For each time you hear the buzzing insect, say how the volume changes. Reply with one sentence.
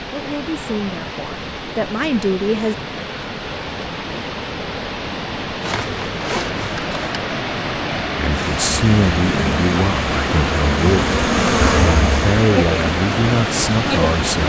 The buzzing insect can be heard from 8.3 to 14.3 s, getting louder then quieter.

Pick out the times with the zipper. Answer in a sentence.
The zipper can be heard from 5.6 to 7.0 s.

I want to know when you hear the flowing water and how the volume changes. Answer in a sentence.
You can hear the flowing water from 0.0 to 14.4 s, getting louder.